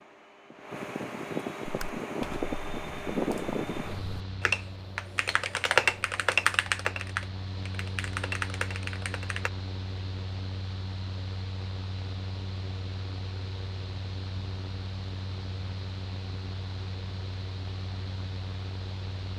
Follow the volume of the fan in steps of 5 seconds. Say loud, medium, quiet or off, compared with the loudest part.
loud, medium, medium, medium.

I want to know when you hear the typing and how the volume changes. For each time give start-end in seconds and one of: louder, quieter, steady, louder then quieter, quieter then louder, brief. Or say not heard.
1.6-9.5 louder then quieter.